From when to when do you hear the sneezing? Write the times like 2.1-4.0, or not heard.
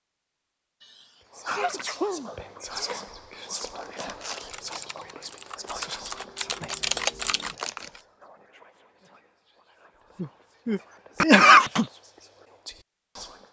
0.8-3.0, 10.2-11.8.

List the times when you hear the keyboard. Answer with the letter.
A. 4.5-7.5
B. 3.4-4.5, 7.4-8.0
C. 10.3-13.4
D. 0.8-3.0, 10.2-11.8
A.